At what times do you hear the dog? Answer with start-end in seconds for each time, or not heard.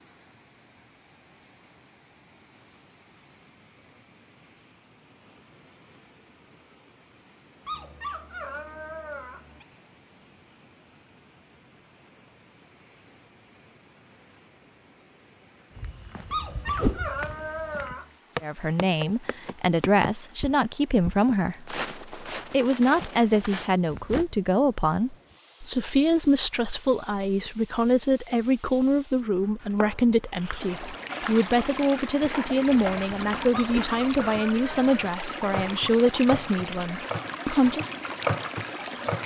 7.7-9.7, 16.3-18.1, 33.5-34.9.